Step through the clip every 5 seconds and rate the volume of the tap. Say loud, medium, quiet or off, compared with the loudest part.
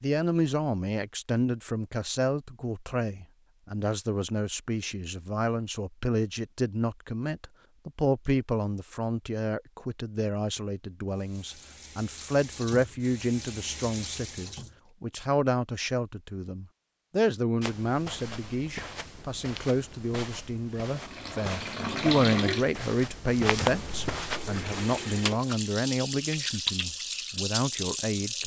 off, off, medium, off, loud, loud.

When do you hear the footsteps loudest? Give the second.
24 s.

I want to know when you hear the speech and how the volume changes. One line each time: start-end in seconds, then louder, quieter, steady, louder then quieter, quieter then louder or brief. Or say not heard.
0.0-28.4 steady.